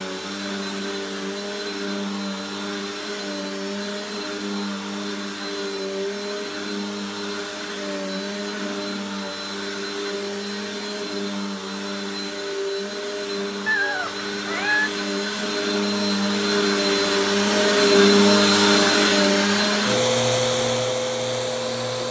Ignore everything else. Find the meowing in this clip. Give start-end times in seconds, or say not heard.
13.7-14.9.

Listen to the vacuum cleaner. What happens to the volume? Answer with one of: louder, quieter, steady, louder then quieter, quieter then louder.
louder.